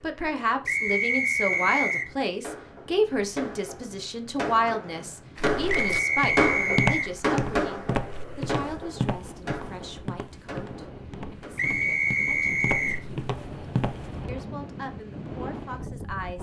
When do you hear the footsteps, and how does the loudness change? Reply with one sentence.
You can hear the footsteps from 5.3 to 14.3 s, getting quieter then louder.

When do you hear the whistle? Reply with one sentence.
The whistle can be heard from 0.7 to 2.1 s, from 5.7 to 7.1 s and from 11.6 to 13.1 s.